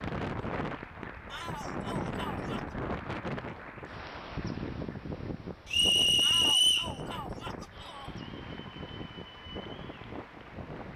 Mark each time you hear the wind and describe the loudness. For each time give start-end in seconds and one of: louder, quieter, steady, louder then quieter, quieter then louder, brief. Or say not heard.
0.0-10.9 quieter.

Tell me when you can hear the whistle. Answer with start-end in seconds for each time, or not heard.
5.7-7.0.